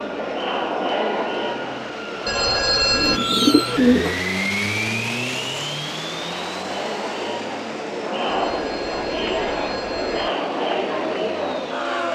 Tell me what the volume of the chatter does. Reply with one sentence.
The volume of the chatter goes down, then up.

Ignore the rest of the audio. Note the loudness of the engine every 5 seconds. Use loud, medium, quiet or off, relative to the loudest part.
loud, loud, medium.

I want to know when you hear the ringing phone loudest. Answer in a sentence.
The loudest moment of the ringing phone is at 3 seconds.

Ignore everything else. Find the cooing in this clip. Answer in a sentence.
You can hear the cooing from 2.9 to 4.2 s.